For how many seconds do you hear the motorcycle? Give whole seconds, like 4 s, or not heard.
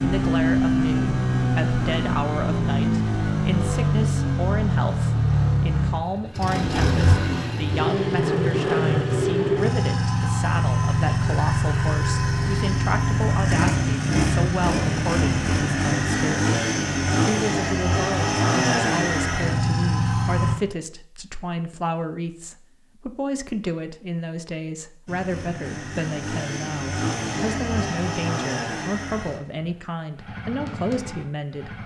27 s.